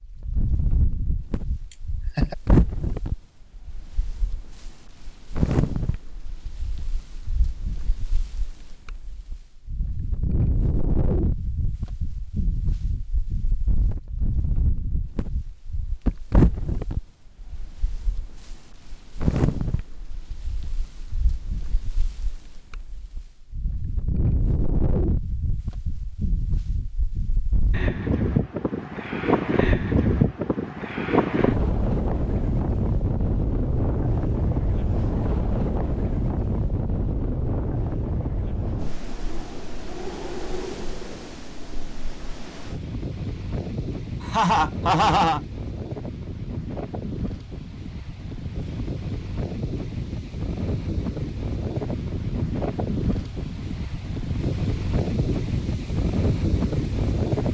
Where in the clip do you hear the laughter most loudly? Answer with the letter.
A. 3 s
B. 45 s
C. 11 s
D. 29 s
B.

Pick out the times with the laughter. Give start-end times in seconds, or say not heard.
1.7-2.4, 44.2-45.4.